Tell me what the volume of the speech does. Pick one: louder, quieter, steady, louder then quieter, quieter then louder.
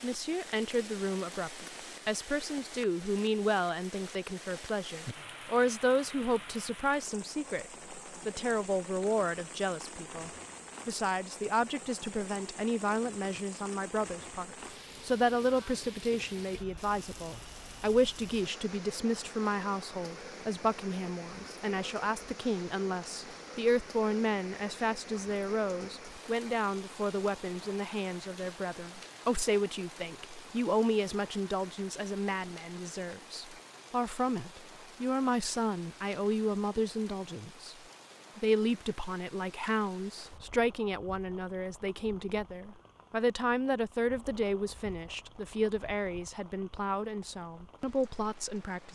steady.